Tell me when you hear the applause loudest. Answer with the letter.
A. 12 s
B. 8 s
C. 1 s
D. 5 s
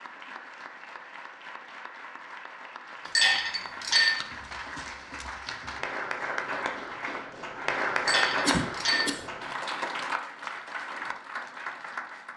B.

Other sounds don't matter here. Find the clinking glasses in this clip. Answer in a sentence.
You can hear the clinking glasses from 3.0 to 4.2 s and from 8.1 to 9.2 s.